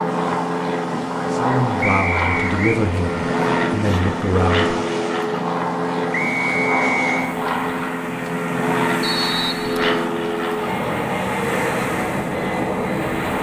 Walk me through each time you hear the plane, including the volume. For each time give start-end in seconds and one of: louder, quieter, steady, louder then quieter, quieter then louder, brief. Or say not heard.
0.0-13.3 steady.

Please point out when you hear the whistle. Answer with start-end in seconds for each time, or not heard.
1.8-2.8, 6.1-7.3, 9.0-10.1.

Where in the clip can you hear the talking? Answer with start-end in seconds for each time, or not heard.
1.3-4.7.